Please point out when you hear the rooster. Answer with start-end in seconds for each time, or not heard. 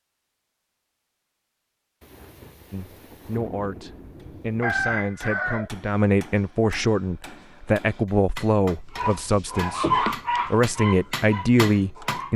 4.6-5.7.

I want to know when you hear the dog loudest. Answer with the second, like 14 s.
10 s.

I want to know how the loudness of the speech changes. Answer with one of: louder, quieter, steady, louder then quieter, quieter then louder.
louder.